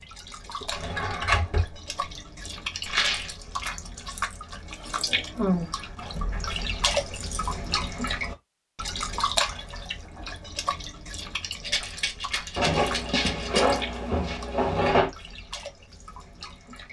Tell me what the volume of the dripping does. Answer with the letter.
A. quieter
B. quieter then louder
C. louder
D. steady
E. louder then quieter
E.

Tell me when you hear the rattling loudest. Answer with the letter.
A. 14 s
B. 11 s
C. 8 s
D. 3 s
D.